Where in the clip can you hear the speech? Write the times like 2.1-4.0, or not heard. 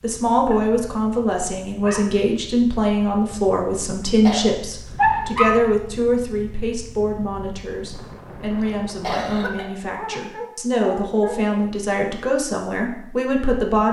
0.0-13.8.